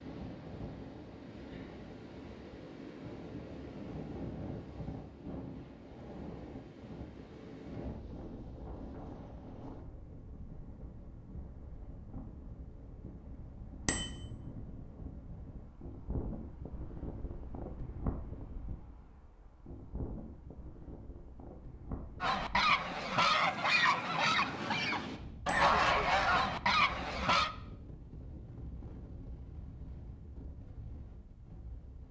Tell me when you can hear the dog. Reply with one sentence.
The dog can't be heard in this clip.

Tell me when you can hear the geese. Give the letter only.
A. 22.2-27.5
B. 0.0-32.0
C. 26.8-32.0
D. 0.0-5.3
A.